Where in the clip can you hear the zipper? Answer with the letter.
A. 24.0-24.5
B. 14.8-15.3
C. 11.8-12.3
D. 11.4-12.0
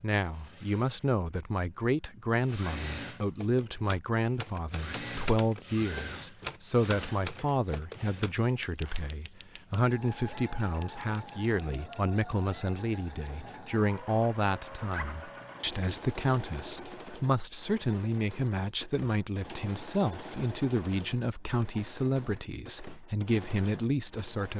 B.